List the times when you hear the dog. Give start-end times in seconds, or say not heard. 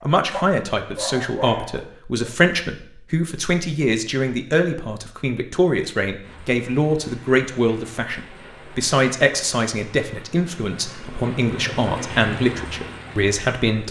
0.0-2.4.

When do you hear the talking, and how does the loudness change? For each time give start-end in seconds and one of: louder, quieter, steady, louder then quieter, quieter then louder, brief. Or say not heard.
0.0-13.8 steady.